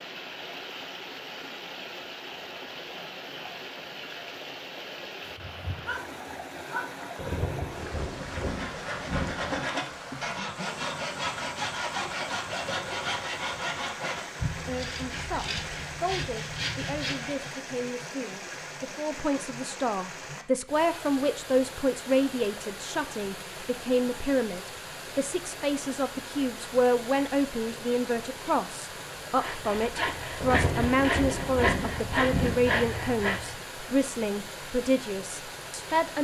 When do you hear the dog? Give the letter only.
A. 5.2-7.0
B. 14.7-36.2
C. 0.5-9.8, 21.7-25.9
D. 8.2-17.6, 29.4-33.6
A.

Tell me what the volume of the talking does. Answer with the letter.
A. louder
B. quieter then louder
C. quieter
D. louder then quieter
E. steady
A.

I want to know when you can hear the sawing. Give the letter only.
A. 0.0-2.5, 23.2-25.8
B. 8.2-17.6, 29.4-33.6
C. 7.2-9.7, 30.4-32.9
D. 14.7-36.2
B.